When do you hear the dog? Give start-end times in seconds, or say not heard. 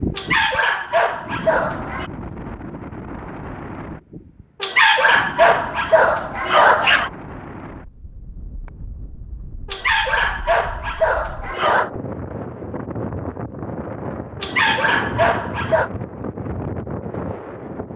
0.1-2.1, 4.6-7.1, 9.7-11.9, 14.4-15.9.